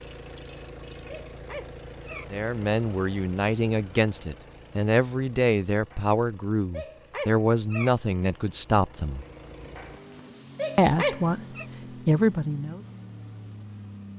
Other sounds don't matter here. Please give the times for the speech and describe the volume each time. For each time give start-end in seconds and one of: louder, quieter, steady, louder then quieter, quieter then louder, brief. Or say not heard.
2.3-9.2 steady
10.8-12.8 brief.